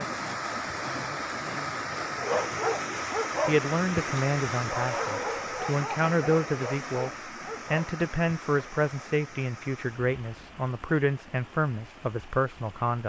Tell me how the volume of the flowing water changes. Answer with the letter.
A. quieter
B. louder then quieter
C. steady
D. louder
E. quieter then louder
A.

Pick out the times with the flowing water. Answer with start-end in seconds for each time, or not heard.
0.0-13.0.